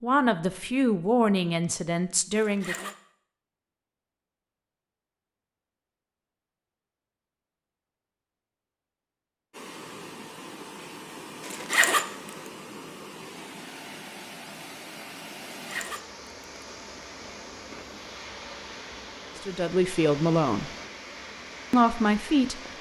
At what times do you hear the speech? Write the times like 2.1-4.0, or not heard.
0.0-2.9, 19.4-20.7, 21.7-22.7.